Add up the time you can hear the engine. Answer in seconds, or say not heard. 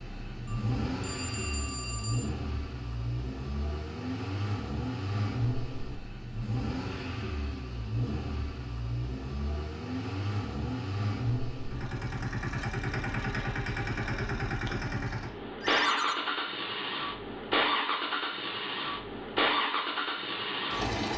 21 s.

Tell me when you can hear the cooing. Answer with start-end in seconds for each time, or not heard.
not heard.